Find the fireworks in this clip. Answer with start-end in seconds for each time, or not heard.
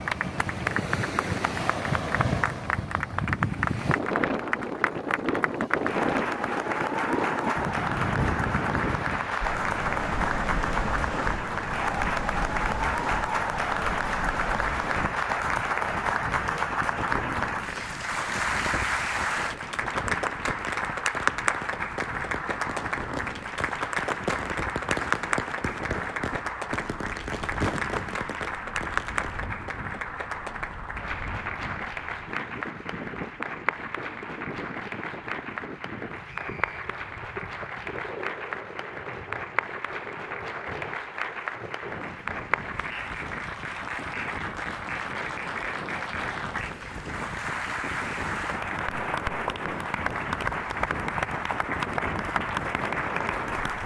20.4-29.4.